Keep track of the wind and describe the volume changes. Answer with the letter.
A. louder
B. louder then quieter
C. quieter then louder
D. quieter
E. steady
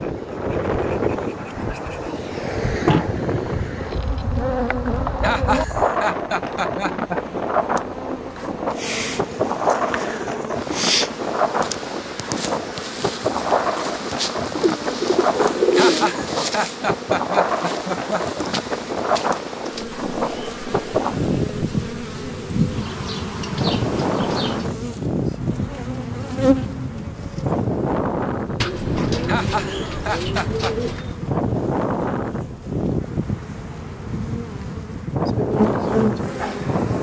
E.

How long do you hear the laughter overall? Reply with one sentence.
The laughter can be heard for 6 seconds in total.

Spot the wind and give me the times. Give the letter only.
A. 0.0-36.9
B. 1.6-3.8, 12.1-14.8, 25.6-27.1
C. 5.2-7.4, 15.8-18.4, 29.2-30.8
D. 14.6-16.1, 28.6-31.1
A.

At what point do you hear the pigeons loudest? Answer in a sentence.
The volume of the pigeons peaks at 16 seconds.